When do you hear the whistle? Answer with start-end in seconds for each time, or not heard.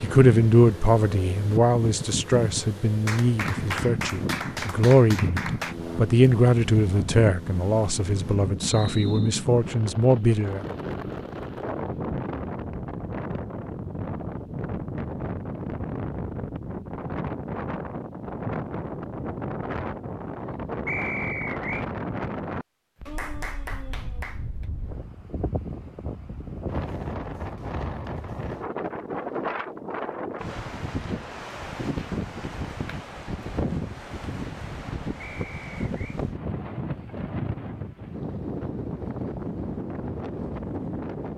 8.6-9.2, 20.9-21.9, 35.1-36.2.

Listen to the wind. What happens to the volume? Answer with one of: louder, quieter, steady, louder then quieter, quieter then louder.
steady.